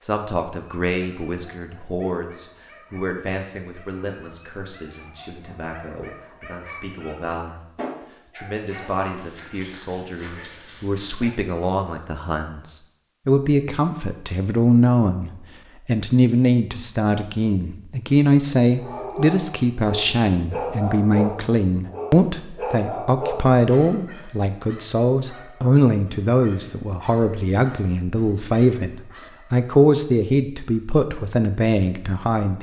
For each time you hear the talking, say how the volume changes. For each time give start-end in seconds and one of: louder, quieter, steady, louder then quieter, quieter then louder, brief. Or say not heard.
0.0-7.7 quieter
8.3-32.5 louder.